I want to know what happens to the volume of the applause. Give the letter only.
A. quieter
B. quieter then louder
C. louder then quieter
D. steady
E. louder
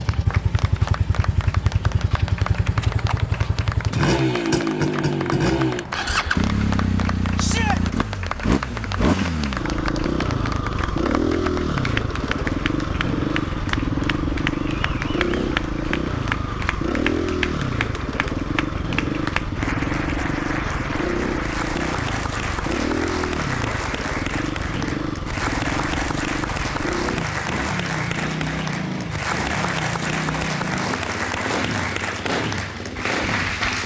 E.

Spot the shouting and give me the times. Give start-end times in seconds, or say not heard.
7.3-7.8.